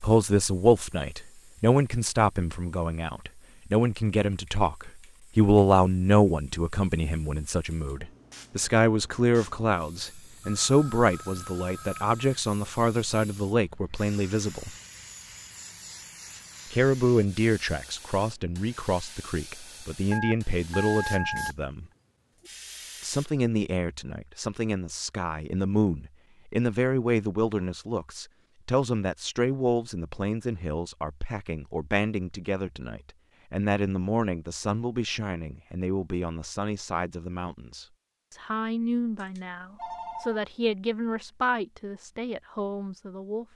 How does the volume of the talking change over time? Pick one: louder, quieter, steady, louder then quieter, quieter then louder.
quieter.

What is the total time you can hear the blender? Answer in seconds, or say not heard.
not heard.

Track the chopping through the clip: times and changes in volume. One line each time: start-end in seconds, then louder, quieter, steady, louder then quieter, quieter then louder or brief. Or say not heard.
not heard.